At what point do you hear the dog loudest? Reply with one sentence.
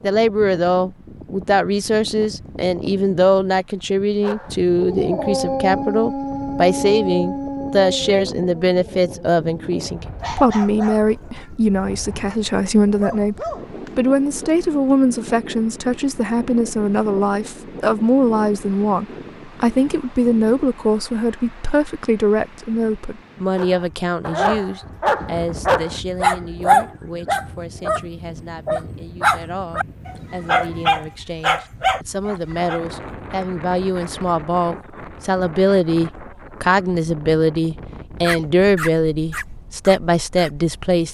The loudest moment of the dog is at 27 seconds.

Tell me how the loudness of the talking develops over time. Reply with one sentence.
The loudness of the talking goes down, then up.